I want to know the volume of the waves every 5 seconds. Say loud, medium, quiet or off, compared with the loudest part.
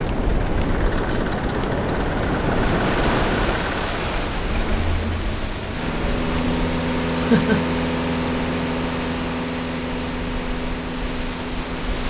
loud, medium, medium.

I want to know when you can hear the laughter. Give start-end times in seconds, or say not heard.
7.2-7.7.